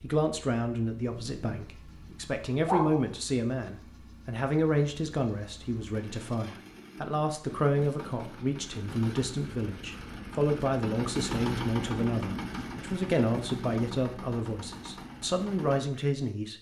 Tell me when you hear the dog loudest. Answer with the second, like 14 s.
3 s.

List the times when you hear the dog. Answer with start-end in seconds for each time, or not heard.
1.1-3.0.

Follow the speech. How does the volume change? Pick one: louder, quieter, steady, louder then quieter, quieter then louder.
steady.